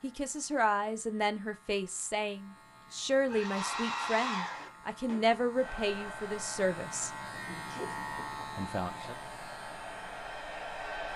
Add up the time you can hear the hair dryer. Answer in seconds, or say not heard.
8 s.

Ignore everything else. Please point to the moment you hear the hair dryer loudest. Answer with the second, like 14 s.
4 s.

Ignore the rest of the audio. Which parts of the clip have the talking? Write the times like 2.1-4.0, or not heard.
0.0-7.1, 8.4-9.2.